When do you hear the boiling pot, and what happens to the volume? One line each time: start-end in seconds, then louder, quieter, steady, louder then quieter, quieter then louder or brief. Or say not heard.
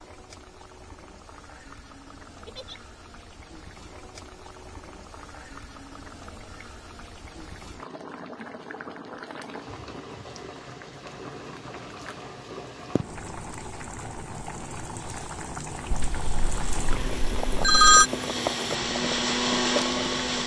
0.0-20.4 louder.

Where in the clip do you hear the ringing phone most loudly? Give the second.
18 s.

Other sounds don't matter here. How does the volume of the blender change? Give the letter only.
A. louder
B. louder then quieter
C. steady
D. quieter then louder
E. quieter
A.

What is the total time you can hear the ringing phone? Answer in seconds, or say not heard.
2 s.